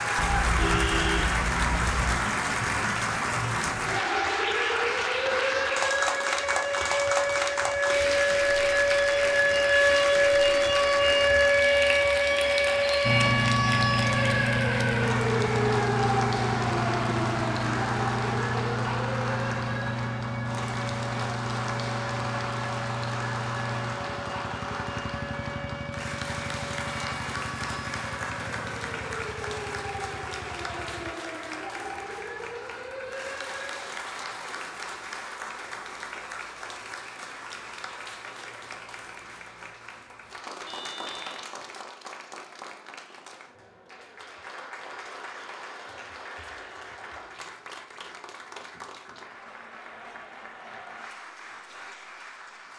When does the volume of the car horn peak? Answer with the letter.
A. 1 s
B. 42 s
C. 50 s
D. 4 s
A.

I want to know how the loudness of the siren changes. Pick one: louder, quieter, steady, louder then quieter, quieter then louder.
louder then quieter.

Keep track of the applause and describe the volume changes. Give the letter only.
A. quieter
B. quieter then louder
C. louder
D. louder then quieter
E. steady
A.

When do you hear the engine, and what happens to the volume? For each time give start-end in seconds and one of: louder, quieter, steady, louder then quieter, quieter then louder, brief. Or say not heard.
13.0-31.1 quieter.